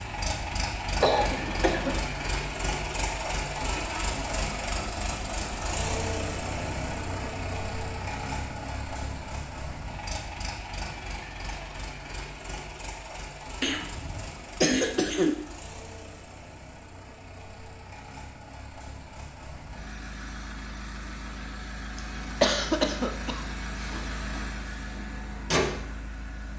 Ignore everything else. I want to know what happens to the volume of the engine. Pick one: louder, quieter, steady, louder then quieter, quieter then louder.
quieter then louder.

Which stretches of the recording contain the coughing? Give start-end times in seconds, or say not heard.
1.0-2.0, 13.6-15.4, 22.4-24.2.